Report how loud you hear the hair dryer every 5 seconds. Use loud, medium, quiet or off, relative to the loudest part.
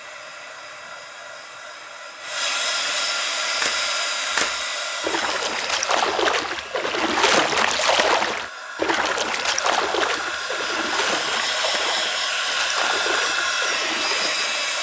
loud, medium, loud.